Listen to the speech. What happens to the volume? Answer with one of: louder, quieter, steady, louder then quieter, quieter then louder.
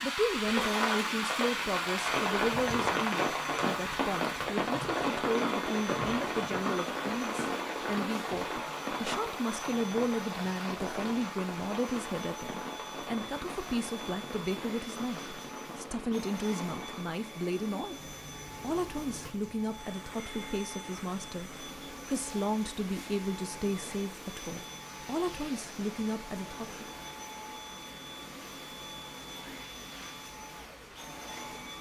steady.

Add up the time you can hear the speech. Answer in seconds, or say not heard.
27 s.